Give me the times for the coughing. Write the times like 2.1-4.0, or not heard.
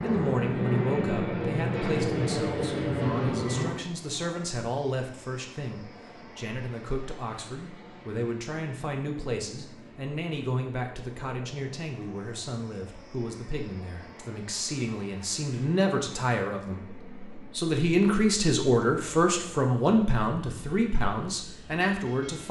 not heard.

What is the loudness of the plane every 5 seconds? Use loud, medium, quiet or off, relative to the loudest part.
loud, quiet, quiet, quiet, quiet.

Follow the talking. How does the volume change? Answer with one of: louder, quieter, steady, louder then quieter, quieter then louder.
louder.